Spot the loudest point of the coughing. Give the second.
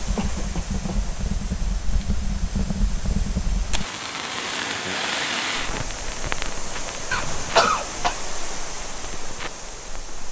8 s.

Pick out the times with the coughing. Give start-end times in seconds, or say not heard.
0.1-1.1, 7.1-8.2.